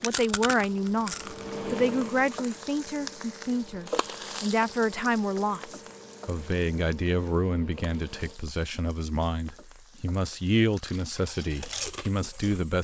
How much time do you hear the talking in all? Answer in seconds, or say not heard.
13 s.